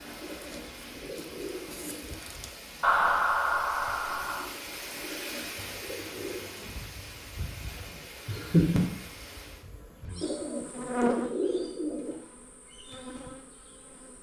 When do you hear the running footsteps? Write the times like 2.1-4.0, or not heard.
not heard.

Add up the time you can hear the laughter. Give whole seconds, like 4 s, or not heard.
2 s.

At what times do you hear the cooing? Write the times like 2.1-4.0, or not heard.
0.2-2.2, 5.0-6.5, 10.2-12.2.